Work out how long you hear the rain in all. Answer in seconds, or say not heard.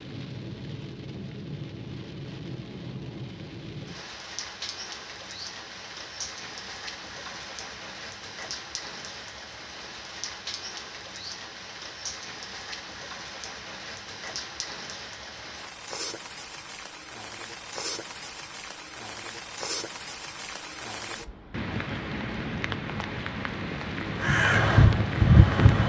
26 s.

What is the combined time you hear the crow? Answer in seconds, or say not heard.
2 s.